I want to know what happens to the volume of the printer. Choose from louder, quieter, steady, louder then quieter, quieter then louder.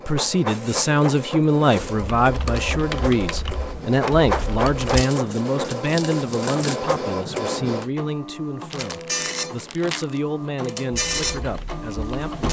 steady.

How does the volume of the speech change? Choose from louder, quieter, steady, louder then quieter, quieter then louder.
quieter.